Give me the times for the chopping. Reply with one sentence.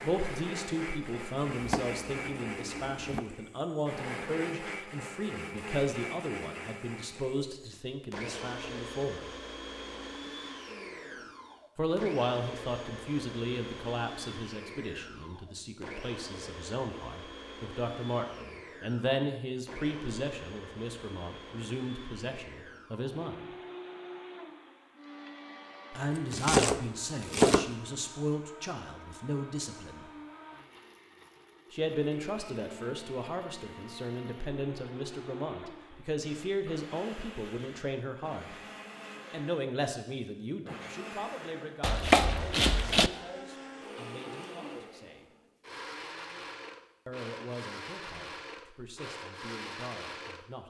You can hear the chopping from 1.5 to 3.2 s, from 26.1 to 27.8 s and from 41.8 to 43.1 s.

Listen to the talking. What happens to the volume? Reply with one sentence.
The loudness of the talking goes down.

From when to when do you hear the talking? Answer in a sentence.
You can hear the talking from 0.0 to 9.2 s, from 11.8 to 23.4 s, from 25.9 to 30.1 s, from 31.7 to 38.5 s, from 39.3 to 45.2 s and from 47.0 to 50.6 s.